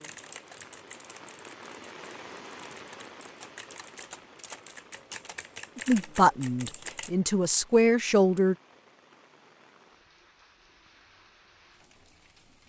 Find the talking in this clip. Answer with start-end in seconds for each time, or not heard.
5.8-8.6.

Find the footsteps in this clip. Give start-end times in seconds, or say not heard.
not heard.